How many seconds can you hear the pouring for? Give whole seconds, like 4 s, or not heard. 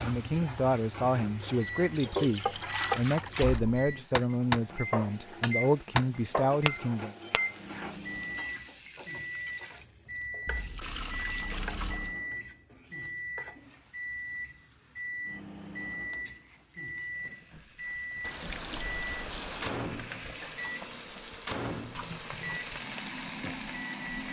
5 s.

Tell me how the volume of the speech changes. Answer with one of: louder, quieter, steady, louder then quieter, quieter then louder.
steady.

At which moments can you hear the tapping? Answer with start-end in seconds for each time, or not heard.
2.1-7.5.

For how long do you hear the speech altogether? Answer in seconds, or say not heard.
7 s.